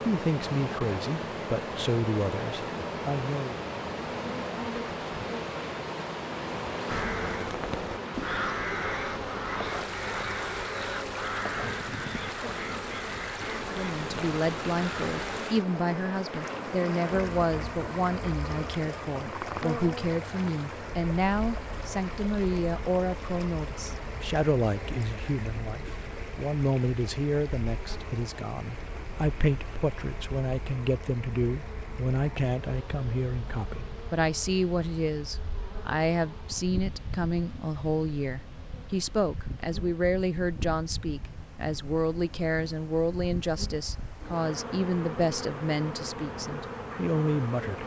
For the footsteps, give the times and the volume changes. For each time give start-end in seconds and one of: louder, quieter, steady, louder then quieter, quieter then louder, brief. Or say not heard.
not heard.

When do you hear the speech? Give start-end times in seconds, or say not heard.
0.0-3.5, 13.7-47.8.